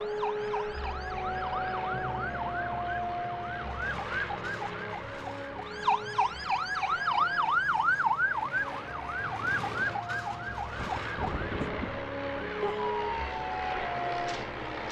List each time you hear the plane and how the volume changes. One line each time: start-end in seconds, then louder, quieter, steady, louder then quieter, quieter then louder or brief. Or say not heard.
0.0-14.8 quieter then louder.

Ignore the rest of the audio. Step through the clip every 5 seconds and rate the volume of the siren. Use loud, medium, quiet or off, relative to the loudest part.
medium, loud, medium.